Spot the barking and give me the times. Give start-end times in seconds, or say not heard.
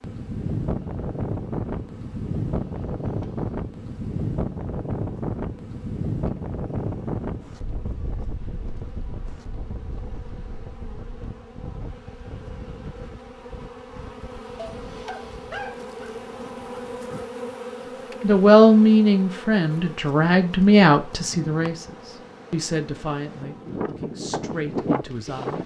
14.6-16.1.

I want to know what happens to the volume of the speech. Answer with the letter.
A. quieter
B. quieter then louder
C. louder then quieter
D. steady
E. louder
A.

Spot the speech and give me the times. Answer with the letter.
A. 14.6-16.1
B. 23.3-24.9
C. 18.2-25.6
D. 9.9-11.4
C.